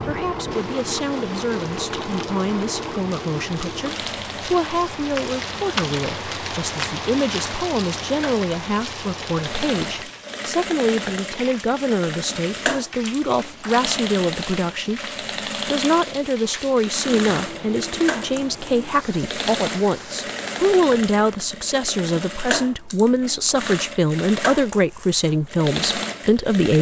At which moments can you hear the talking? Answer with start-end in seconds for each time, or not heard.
0.0-26.7.